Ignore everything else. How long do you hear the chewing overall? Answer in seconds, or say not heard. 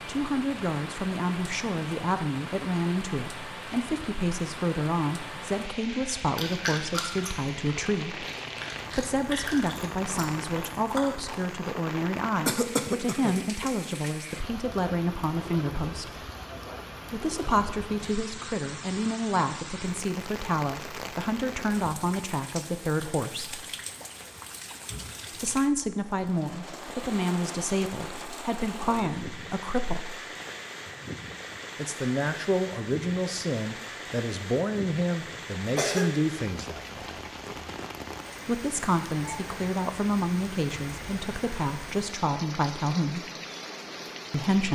6 s.